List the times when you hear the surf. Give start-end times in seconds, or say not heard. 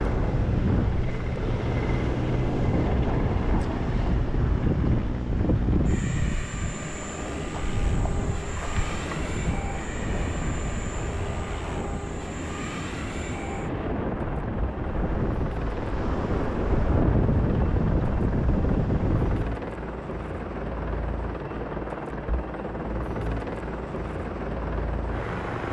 0.0-19.6.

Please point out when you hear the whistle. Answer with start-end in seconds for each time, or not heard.
not heard.